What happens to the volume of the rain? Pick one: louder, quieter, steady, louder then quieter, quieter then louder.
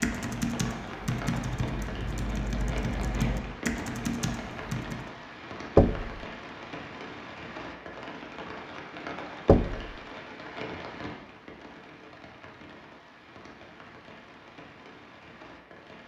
quieter.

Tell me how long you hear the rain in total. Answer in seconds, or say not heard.
16 s.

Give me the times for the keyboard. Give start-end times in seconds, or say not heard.
0.0-5.1.